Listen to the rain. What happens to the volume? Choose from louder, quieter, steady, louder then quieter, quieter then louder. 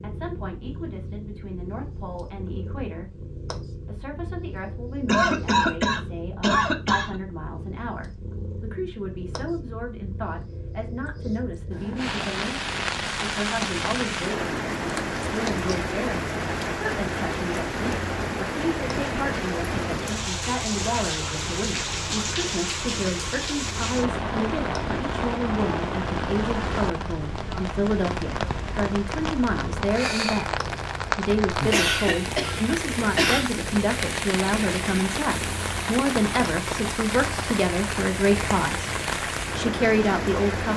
steady.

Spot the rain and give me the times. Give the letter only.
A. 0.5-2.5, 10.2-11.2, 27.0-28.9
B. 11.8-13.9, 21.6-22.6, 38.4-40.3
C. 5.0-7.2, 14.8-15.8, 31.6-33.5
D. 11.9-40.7
D.